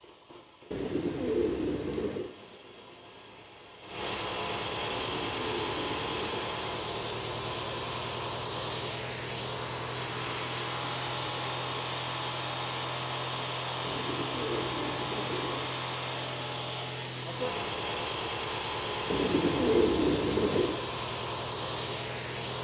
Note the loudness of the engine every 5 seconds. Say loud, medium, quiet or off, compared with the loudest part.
medium, loud, loud, loud, loud.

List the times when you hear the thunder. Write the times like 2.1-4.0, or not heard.
not heard.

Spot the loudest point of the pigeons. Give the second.
20 s.